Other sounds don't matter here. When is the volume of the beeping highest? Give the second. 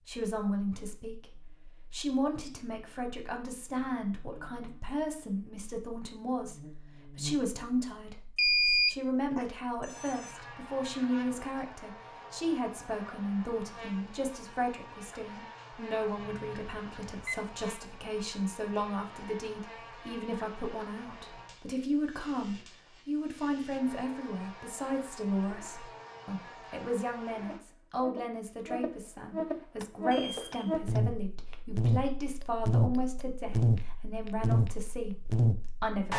9 s.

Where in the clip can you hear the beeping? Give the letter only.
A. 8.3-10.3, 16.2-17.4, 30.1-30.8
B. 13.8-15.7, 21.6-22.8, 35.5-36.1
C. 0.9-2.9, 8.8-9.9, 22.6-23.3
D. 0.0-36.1
A.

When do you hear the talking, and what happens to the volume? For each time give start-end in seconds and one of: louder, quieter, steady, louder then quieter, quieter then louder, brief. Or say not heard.
0.0-36.1 steady.